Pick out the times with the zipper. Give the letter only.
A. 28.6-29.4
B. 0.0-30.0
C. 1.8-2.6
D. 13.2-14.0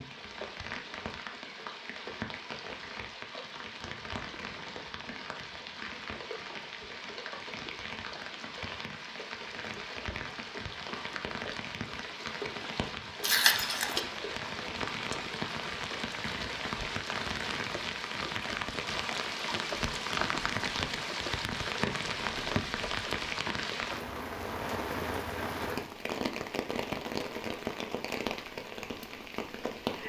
D.